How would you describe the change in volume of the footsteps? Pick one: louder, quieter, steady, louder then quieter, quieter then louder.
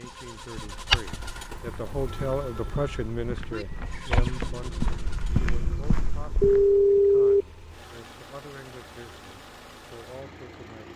quieter then louder.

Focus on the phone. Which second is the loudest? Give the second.
7 s.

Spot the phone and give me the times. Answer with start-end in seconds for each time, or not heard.
2.0-3.6, 6.4-7.5.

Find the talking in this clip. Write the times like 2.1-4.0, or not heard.
0.0-10.9.